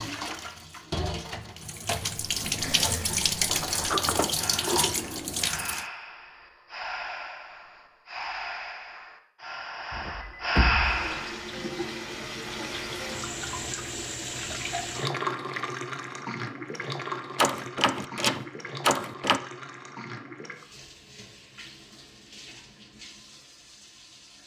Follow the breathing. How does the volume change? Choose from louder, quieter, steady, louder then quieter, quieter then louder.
louder.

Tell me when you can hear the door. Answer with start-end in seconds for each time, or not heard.
3.5-5.3, 9.9-11.0, 17.4-19.4.